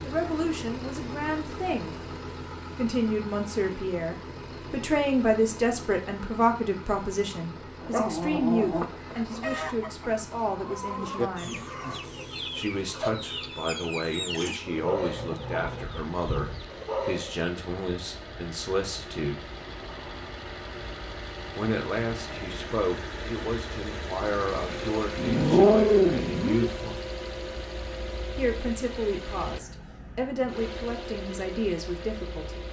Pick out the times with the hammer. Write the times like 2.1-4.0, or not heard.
not heard.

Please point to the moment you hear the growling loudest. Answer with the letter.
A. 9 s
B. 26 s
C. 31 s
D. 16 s
B.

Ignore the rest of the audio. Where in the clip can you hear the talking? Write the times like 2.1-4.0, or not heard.
0.0-1.9, 2.8-11.6, 12.5-19.4, 21.6-27.0, 28.4-32.6.